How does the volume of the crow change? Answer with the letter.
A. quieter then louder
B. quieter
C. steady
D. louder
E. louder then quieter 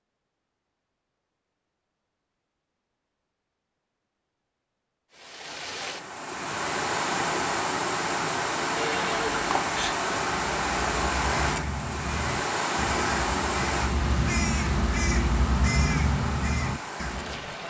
D.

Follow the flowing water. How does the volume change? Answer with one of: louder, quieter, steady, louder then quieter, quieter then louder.
quieter.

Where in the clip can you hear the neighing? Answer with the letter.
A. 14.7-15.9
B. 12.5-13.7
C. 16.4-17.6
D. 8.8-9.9
D.